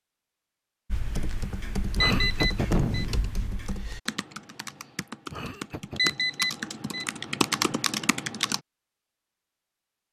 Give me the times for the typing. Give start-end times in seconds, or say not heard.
0.9-8.6.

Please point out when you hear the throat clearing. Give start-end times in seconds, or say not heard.
1.9-3.5, 5.2-6.2.